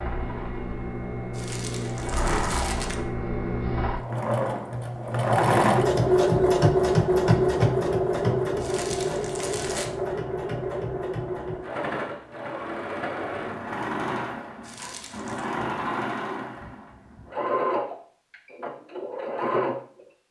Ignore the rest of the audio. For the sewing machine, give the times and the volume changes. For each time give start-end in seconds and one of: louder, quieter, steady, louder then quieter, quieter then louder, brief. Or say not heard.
0.0-20.2 louder then quieter.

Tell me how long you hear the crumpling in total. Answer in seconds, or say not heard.
4 s.